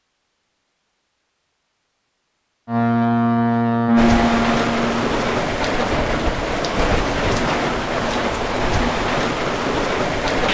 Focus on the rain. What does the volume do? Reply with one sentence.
The volume of the rain stays about the same.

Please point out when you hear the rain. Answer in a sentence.
The rain can be heard from 4.0 to 10.4 s.